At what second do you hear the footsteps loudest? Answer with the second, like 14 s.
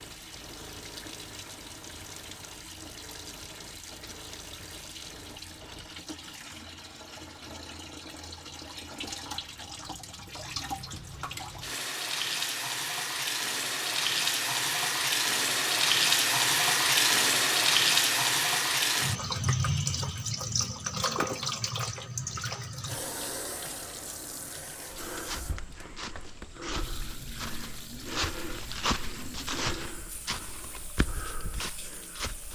29 s.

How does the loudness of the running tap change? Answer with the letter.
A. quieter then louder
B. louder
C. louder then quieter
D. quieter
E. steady
C.